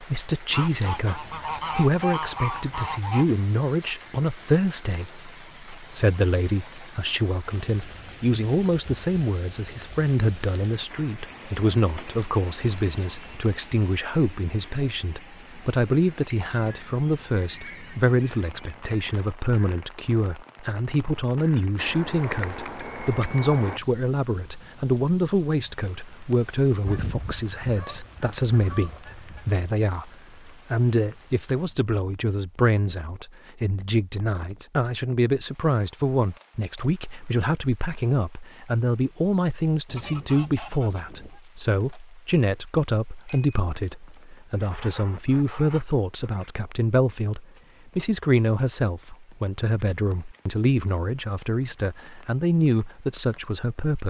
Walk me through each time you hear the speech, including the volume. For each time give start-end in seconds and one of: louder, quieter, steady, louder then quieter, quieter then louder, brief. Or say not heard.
0.0-54.0 steady.